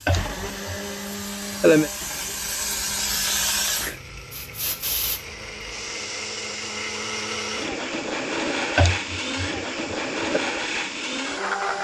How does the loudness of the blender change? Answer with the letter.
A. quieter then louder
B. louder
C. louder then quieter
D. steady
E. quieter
A.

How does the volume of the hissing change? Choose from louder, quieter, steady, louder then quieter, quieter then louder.
louder then quieter.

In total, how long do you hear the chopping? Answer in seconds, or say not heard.
not heard.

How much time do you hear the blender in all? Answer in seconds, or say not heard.
12 s.